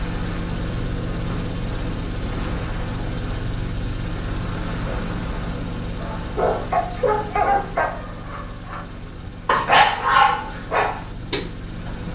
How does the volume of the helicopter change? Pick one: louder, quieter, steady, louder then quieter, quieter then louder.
quieter.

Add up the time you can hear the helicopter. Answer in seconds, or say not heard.
12 s.